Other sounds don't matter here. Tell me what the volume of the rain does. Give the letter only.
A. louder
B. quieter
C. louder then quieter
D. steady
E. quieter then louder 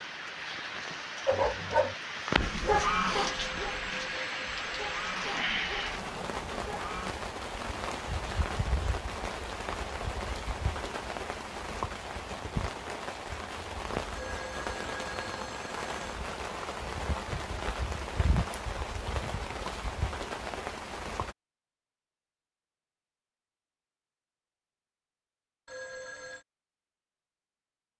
D.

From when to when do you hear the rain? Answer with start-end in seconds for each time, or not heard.
0.0-21.4.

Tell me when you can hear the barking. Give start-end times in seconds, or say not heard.
1.2-7.2.